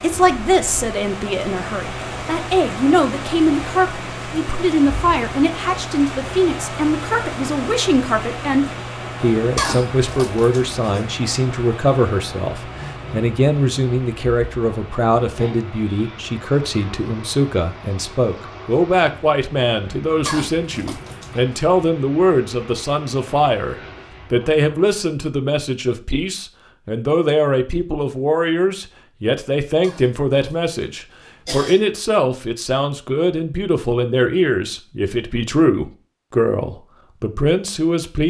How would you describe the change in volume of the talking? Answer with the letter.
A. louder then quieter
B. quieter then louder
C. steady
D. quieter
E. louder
C.